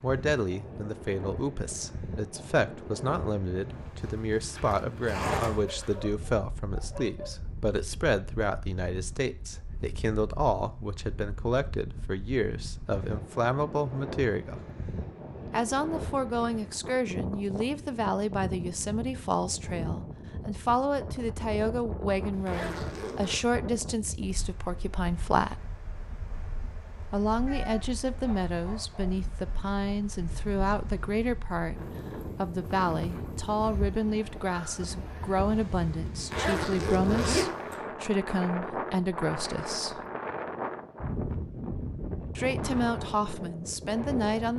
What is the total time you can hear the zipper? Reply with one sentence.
You can hear the zipper for 5 seconds altogether.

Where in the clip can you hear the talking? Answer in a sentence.
The talking can be heard from 0.0 to 14.6 s, from 15.5 to 25.6 s, from 27.1 to 40.0 s and from 42.4 to 44.5 s.